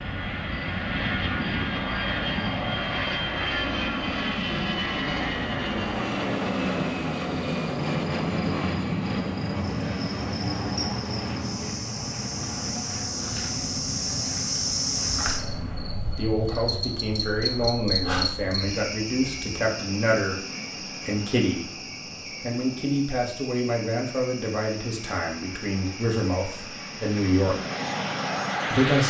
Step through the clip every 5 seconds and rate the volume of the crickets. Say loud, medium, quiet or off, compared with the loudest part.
medium, medium, loud, loud, medium, medium.